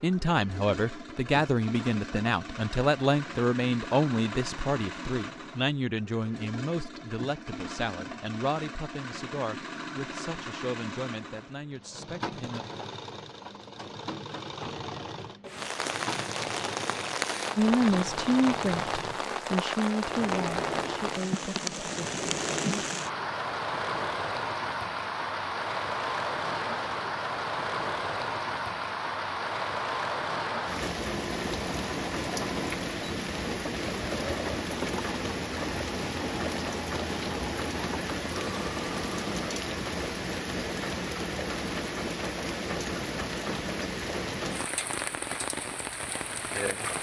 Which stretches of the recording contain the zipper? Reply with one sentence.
The zipper can't be heard in this clip.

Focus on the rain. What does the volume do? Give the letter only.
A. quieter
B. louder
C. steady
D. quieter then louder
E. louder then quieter
C.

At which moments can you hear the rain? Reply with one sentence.
The rain can be heard from 15.4 to 46.9 s.